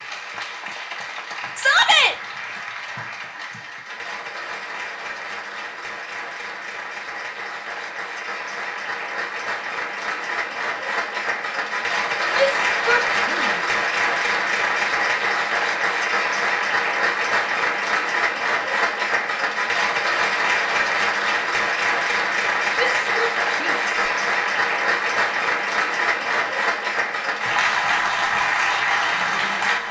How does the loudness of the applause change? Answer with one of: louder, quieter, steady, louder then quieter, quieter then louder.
louder.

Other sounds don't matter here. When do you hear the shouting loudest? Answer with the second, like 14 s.
2 s.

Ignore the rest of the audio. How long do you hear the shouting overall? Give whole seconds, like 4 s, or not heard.
3 s.